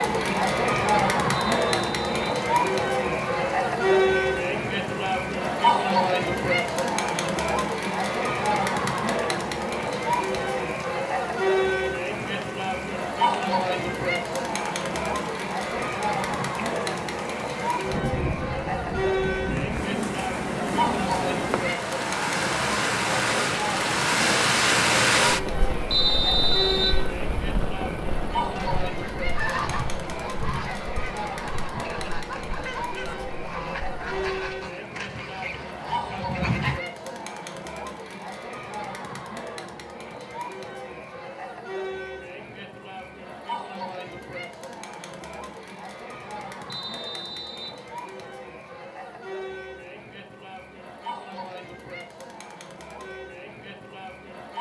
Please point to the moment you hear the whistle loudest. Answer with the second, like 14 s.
26 s.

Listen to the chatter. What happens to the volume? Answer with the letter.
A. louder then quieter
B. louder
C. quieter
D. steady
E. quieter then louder
C.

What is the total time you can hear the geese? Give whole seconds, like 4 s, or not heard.
8 s.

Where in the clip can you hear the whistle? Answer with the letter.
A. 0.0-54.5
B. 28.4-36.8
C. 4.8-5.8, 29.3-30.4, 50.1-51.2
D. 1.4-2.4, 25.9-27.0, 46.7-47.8
D.